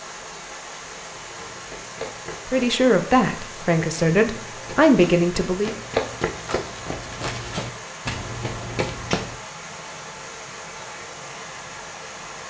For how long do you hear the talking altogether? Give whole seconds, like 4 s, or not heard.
3 s.